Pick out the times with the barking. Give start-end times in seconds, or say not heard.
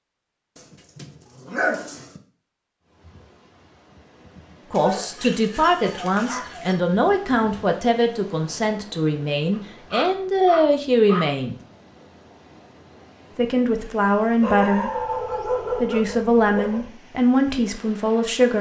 0.6-2.2, 4.7-6.8, 9.5-11.3, 14.4-16.9.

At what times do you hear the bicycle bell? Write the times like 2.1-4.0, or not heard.
not heard.